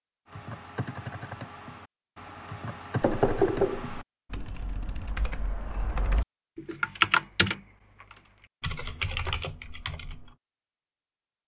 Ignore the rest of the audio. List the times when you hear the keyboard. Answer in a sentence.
You can hear the keyboard from 0.2 to 10.3 s.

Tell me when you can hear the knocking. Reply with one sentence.
The knocking can be heard from 3.0 to 4.0 s.